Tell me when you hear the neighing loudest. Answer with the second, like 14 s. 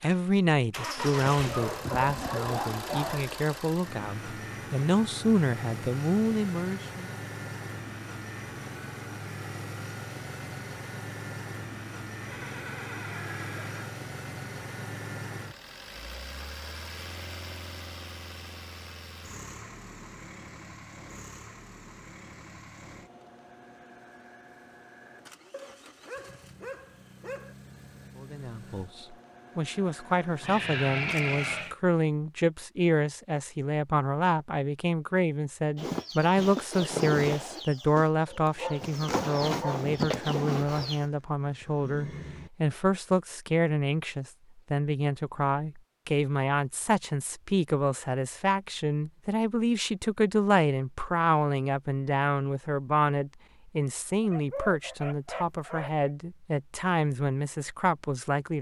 31 s.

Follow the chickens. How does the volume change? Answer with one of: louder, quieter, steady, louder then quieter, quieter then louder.
quieter then louder.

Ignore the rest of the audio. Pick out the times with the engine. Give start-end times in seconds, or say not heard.
0.0-31.8.